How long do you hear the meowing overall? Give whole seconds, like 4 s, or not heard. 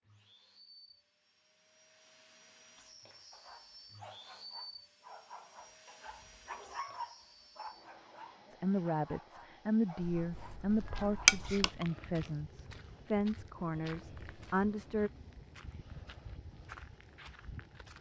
2 s.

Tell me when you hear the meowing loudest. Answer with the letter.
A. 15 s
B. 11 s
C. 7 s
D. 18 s
B.